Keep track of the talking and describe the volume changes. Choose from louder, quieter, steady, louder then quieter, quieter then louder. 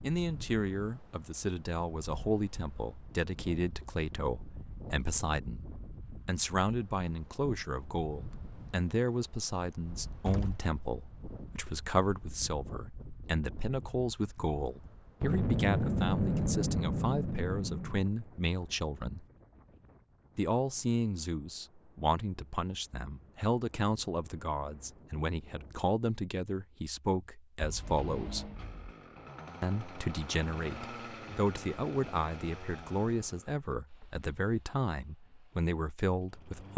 steady.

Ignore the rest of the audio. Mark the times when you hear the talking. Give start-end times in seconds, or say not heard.
0.0-5.7, 6.2-19.2, 20.4-28.5, 29.6-36.7.